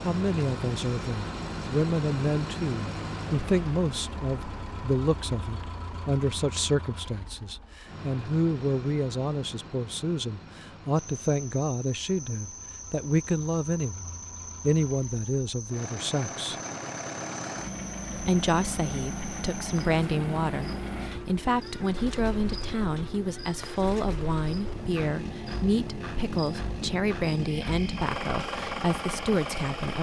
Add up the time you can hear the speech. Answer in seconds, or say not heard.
28 s.